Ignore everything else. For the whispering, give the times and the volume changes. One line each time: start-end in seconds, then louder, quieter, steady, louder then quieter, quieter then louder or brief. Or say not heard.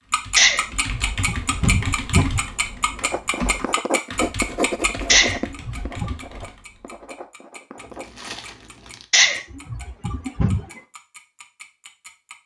not heard.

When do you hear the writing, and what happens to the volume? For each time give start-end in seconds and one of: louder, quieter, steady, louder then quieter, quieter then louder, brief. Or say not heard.
3.0-8.2 quieter.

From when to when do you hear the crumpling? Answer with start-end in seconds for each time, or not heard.
7.8-9.1.